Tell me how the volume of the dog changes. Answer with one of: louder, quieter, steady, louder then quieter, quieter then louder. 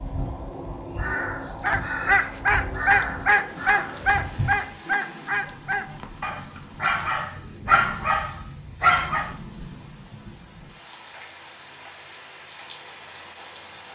quieter then louder.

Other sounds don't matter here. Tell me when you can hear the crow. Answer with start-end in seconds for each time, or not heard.
0.0-4.8.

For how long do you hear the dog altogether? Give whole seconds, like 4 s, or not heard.
8 s.